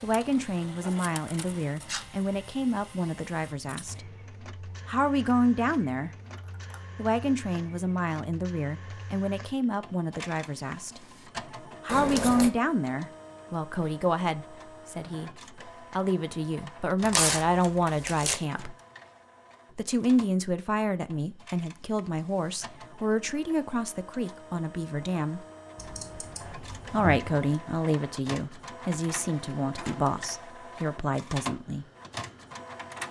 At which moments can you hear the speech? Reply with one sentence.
You can hear the speech from 0.0 to 4.0 s, from 4.8 to 6.1 s, from 7.0 to 11.1 s, from 11.8 to 18.8 s, from 19.8 to 25.4 s and from 26.9 to 31.9 s.